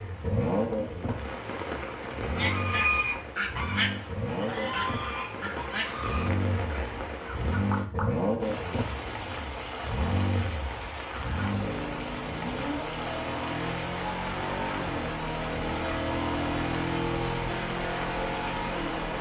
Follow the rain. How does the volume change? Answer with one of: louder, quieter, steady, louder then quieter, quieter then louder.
steady.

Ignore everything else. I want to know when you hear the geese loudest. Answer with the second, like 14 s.
3 s.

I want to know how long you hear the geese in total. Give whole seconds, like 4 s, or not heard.
5 s.